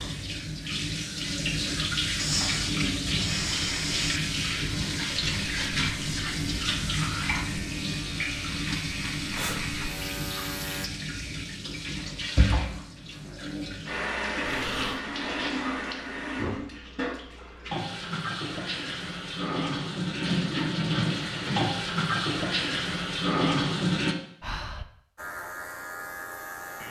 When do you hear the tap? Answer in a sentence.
The tap can be heard from 0.0 to 24.1 s.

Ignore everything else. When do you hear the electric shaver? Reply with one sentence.
You can hear the electric shaver from 3.2 to 10.9 s and from 25.1 to 26.8 s.